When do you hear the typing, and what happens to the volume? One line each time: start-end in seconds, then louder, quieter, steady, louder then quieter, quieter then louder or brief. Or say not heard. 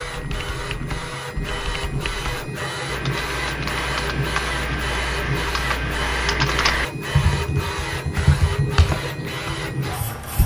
0.0-10.4 louder.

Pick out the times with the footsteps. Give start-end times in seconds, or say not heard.
not heard.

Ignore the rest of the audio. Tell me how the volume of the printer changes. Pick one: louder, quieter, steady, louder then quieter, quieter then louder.
steady.